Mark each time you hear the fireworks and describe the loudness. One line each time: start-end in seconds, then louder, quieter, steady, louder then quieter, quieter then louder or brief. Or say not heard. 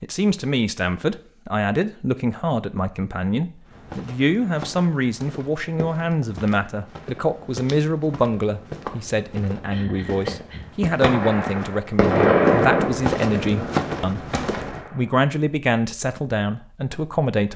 11.0-15.1 louder then quieter.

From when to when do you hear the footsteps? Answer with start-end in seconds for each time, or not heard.
3.6-14.8.